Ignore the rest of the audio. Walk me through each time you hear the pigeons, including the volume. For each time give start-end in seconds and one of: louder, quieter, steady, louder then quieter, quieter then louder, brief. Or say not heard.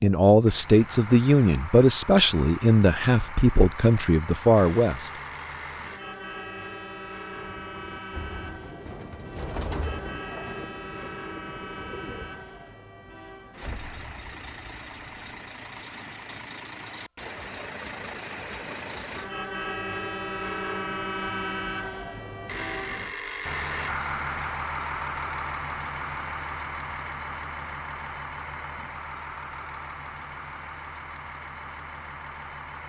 7.3-12.8 louder then quieter.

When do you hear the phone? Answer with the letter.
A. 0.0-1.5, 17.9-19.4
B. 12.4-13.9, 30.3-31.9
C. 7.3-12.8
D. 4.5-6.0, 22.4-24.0
D.